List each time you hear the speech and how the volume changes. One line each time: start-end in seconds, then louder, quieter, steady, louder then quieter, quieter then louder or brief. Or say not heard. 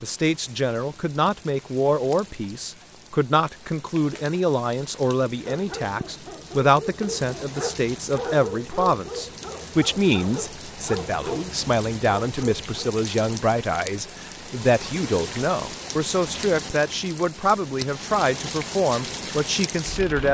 0.0-20.3 steady.